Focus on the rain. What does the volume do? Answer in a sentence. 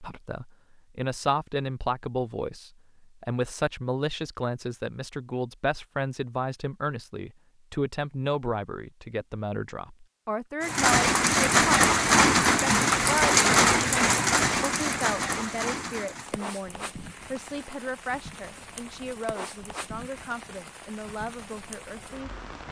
The volume of the rain goes down.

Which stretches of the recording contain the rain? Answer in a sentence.
You can hear the rain from 10.6 to 22.6 s.